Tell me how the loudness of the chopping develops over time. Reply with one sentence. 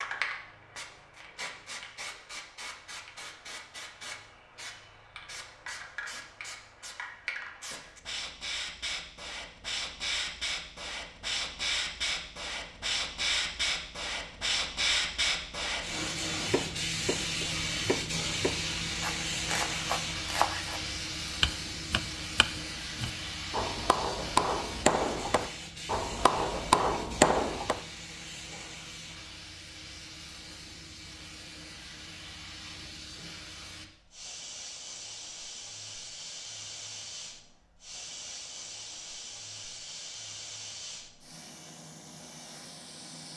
The volume of the chopping goes up.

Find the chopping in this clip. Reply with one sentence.
The chopping can be heard from 16.3 to 27.8 s.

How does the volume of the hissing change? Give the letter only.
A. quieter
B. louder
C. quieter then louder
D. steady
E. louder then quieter
E.